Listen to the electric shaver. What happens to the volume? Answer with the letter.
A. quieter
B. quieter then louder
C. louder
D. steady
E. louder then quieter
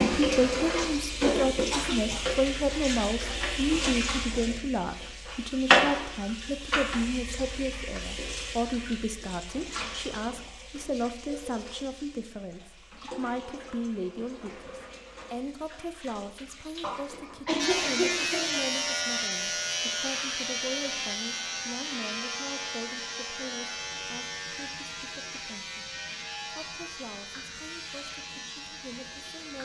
A.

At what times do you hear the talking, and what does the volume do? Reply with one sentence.
You can hear the talking from 0.0 to 29.6 s, getting quieter.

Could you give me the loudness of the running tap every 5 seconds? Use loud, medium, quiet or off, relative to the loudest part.
loud, loud, quiet, quiet, quiet, quiet.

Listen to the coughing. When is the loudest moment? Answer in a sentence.
The loudest moment of the coughing is at 18 seconds.